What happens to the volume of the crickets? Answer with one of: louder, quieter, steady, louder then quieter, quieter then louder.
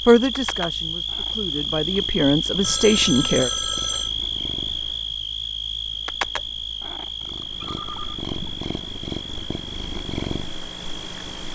quieter.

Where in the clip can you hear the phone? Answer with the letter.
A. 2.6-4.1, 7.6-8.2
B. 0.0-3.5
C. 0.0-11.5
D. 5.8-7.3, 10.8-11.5
A.